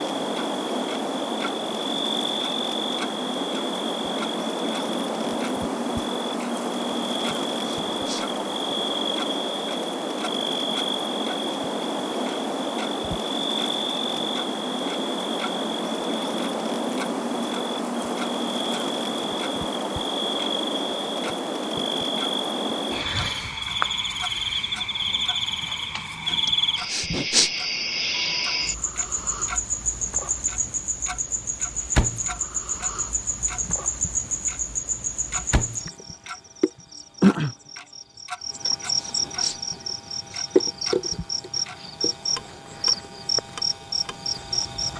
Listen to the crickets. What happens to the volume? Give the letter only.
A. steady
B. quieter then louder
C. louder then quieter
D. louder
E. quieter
A.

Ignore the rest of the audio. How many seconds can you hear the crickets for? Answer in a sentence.
You can hear the crickets for 45 seconds altogether.